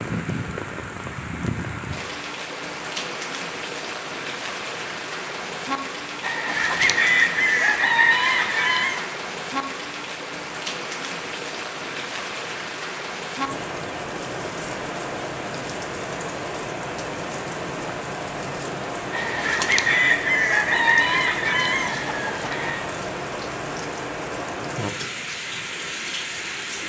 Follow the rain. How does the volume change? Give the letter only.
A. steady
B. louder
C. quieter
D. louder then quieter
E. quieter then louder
A.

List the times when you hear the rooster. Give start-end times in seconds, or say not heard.
6.2-9.1, 19.1-22.9.